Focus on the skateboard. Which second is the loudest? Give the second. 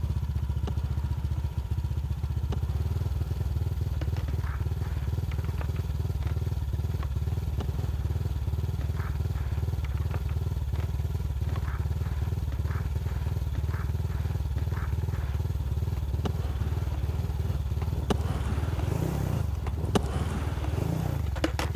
20 s.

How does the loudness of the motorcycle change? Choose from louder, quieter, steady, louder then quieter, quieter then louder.
steady.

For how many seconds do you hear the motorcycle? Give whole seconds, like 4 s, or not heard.
22 s.